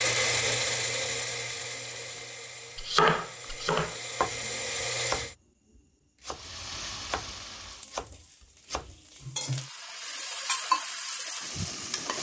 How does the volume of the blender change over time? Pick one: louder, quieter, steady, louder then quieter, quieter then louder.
quieter then louder.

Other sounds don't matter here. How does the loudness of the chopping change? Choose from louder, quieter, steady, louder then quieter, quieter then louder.
quieter then louder.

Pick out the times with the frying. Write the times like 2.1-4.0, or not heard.
6.3-12.1.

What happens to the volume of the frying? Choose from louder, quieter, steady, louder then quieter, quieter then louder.
quieter then louder.